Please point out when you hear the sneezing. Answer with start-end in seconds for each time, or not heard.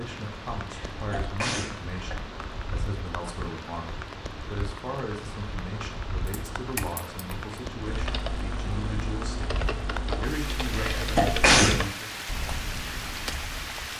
0.7-2.1, 10.8-11.8.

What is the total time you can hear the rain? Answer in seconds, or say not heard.
14 s.